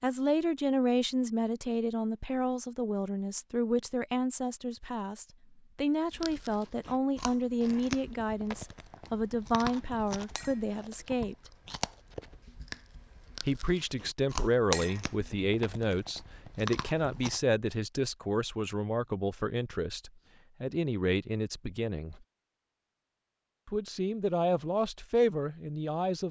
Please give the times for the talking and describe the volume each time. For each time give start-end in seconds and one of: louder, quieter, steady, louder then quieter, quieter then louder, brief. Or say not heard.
0.0-11.3 steady
13.4-22.2 steady
23.6-26.2 brief.